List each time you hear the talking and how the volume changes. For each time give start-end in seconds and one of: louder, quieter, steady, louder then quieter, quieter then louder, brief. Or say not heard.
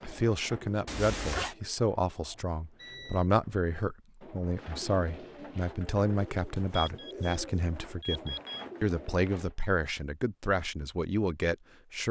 0.0-12.0 steady.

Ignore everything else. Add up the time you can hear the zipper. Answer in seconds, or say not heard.
3 s.